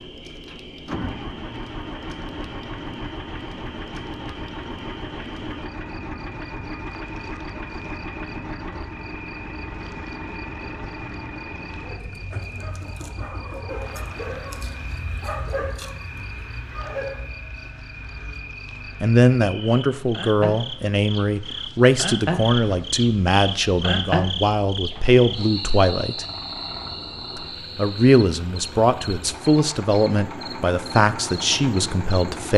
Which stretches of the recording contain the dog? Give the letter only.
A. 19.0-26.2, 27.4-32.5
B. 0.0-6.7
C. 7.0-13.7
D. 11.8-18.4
D.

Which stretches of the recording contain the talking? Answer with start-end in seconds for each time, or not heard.
19.0-26.2, 27.4-32.5.